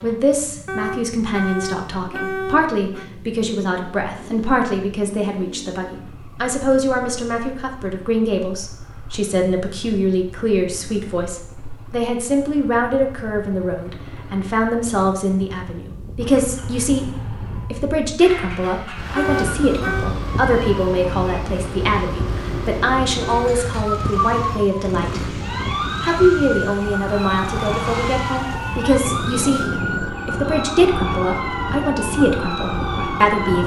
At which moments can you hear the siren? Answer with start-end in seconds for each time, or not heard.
19.4-33.6.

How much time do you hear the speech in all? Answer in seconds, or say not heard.
32 s.